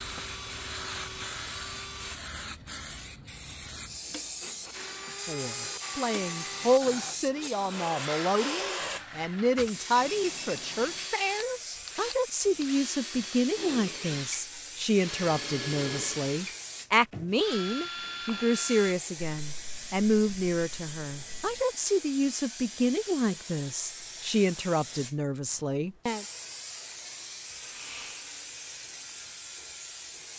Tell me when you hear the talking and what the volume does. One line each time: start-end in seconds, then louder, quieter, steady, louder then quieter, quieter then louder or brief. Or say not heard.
5.2-26.2 steady.